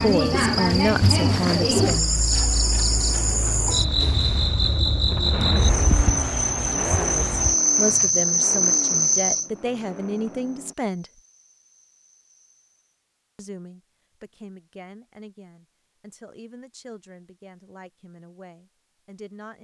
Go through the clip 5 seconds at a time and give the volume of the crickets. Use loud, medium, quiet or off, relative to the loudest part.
loud, loud, quiet, off.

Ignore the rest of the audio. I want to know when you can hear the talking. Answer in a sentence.
You can hear the talking from 0.0 to 2.2 s, from 7.0 to 11.1 s and from 13.3 to 19.5 s.